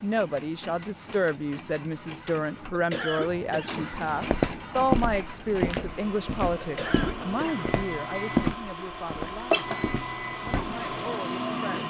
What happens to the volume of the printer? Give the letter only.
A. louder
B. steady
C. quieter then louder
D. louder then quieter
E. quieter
A.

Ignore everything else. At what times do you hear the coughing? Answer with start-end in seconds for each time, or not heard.
2.7-3.9, 6.6-7.7.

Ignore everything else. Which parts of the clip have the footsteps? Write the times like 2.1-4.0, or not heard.
4.2-10.8.